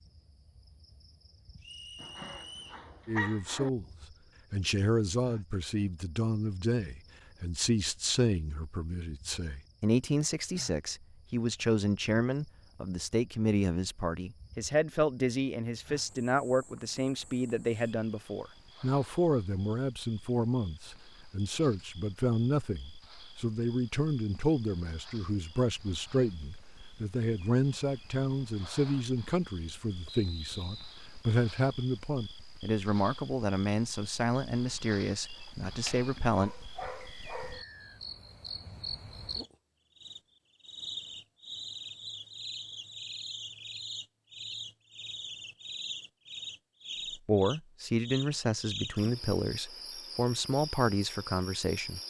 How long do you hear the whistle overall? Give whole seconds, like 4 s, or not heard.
3 s.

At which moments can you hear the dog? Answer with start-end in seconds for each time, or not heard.
2.0-3.7, 35.6-37.6.